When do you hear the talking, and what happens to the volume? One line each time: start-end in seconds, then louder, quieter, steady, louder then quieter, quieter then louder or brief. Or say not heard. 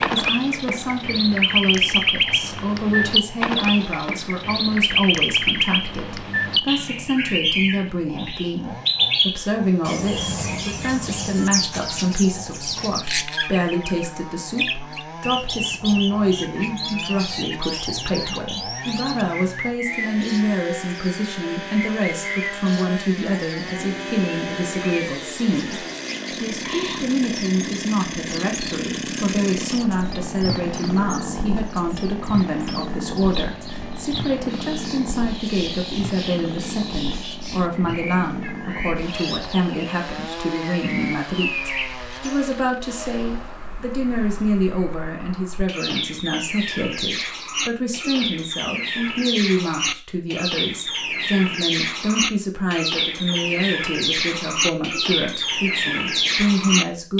0.1-57.1 steady.